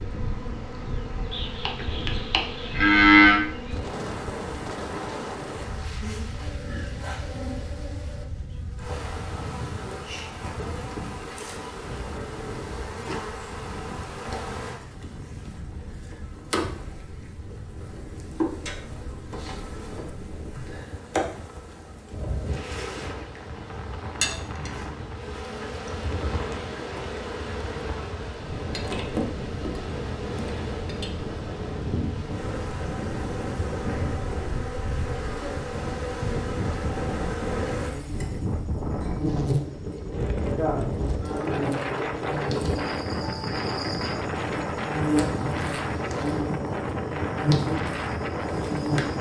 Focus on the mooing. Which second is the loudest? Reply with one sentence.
The volume of the mooing peaks at 3 seconds.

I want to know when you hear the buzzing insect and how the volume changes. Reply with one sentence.
You can hear the buzzing insect from 0.0 to 49.1 s, getting louder.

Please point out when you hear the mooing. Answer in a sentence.
The mooing can be heard from 1.3 to 3.4 s.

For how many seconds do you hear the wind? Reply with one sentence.
You can hear the wind for 49 seconds altogether.